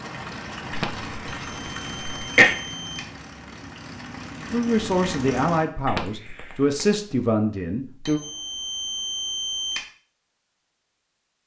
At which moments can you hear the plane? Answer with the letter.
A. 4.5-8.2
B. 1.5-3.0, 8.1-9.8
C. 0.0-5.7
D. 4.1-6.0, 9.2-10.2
C.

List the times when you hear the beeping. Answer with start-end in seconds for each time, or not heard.
1.5-3.0, 8.1-9.8.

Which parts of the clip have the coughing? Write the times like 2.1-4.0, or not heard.
0.7-2.5, 5.8-6.8.